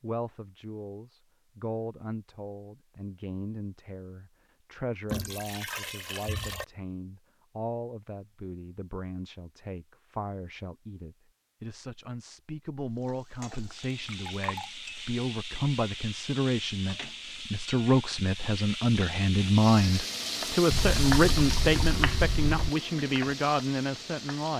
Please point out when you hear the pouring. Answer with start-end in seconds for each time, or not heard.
5.0-6.7, 13.9-14.7, 20.7-22.7.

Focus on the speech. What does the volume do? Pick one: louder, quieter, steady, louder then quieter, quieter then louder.
louder.